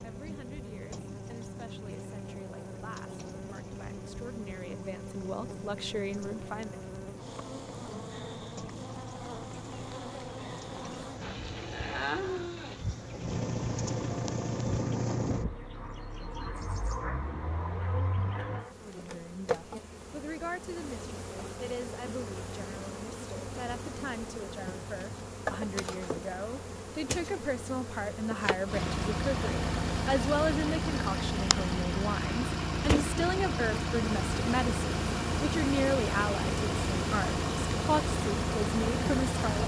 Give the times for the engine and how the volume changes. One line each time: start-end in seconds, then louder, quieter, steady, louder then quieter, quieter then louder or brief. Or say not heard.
0.0-18.6 louder
28.6-39.6 steady.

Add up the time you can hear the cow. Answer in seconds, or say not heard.
2 s.